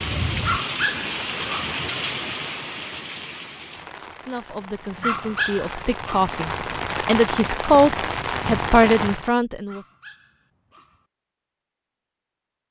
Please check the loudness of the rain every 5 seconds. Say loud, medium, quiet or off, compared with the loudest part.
loud, loud, off.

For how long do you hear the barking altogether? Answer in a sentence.
You can hear the barking for 4 seconds altogether.